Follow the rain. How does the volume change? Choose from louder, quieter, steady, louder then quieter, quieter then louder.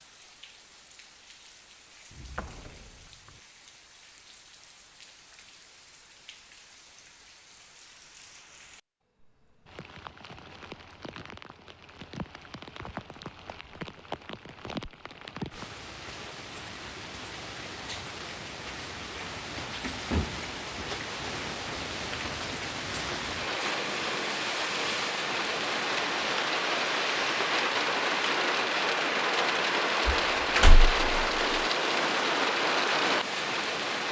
louder.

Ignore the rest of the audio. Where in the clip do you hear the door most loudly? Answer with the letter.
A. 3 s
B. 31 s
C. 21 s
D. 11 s
B.